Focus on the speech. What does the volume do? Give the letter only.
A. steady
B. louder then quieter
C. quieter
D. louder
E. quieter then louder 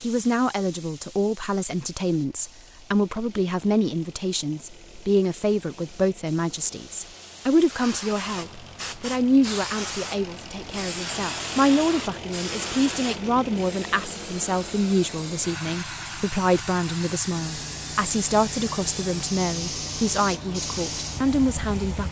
A.